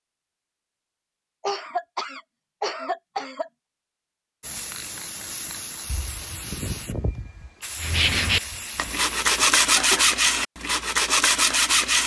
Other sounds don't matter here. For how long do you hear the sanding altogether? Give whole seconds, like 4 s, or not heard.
4 s.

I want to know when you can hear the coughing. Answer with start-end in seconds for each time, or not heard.
1.4-3.5, 9.8-10.3.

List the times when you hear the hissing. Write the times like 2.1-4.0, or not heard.
4.4-9.4.